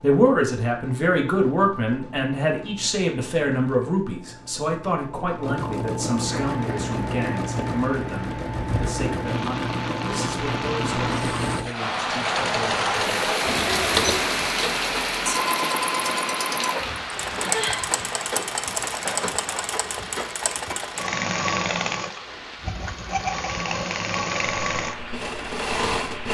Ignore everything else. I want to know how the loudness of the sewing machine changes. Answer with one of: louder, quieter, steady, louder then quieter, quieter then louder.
louder.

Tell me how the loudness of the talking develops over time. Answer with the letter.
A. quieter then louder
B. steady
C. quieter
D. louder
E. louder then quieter
C.